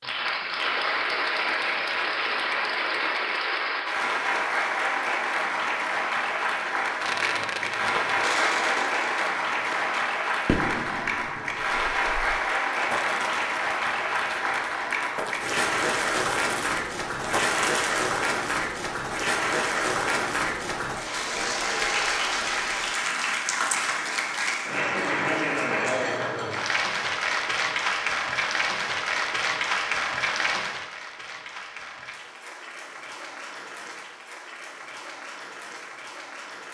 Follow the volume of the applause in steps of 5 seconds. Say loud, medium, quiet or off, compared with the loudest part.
loud, loud, loud, loud, loud, loud, medium, quiet.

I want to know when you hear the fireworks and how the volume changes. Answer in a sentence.
The fireworks can be heard from 7.0 to 18.1 s, getting quieter then louder.